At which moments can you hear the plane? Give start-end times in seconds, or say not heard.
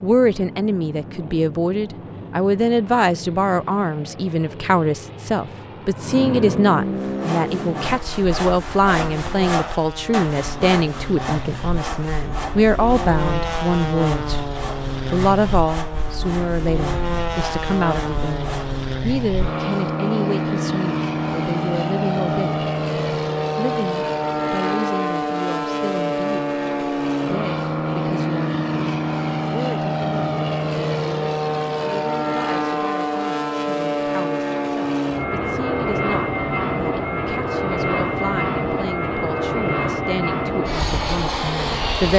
0.0-42.1.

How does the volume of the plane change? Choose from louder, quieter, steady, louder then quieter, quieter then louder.
louder.